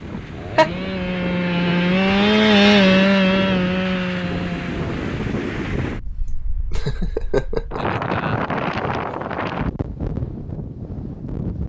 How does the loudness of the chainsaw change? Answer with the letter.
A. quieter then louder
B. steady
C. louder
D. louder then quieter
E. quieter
D.